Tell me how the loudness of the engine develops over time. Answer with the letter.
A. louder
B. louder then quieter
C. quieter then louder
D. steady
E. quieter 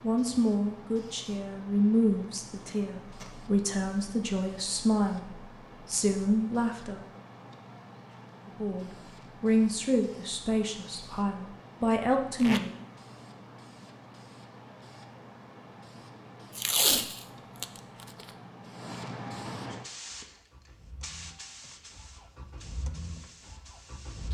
B.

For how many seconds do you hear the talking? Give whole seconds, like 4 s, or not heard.
11 s.